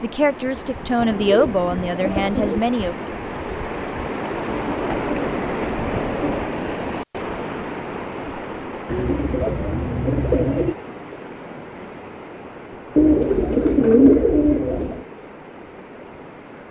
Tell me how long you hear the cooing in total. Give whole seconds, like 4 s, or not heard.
8 s.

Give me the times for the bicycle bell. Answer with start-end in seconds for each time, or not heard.
not heard.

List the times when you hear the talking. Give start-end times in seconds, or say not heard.
0.0-3.0.